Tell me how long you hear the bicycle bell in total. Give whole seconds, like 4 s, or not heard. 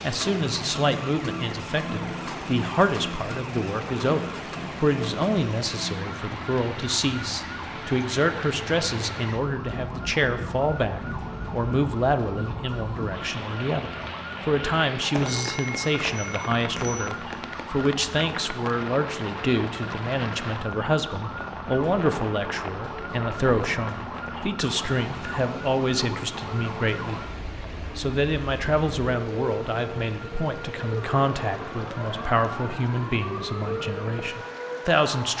2 s.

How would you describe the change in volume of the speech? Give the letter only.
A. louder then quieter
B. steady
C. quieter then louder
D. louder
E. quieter
B.